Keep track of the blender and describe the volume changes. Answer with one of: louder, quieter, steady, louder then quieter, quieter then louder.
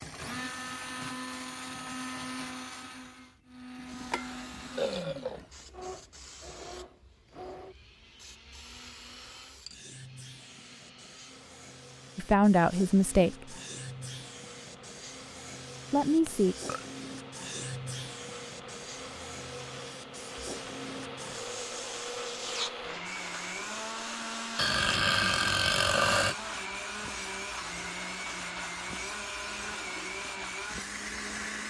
quieter then louder.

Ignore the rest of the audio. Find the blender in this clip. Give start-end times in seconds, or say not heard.
0.0-31.6.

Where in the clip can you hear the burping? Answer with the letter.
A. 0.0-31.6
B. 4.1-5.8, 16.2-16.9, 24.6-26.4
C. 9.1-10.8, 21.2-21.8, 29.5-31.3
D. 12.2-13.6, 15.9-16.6
B.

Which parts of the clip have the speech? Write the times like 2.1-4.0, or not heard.
12.2-13.6, 15.9-16.6.